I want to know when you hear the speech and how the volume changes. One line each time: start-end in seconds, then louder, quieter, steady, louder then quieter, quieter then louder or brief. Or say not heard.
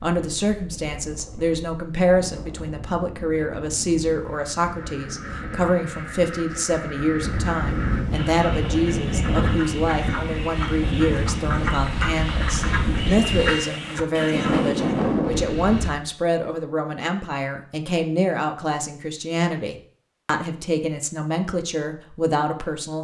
0.0-22.9 steady.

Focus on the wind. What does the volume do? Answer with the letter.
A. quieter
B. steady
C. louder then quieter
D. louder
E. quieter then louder
D.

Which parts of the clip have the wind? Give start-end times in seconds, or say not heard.
0.1-15.9.